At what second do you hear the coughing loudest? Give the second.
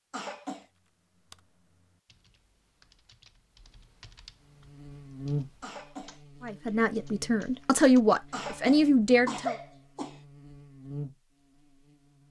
9 s.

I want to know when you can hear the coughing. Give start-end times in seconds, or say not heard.
0.1-0.7, 5.6-6.2, 8.3-10.2.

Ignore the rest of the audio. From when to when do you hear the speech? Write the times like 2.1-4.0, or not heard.
6.4-9.6.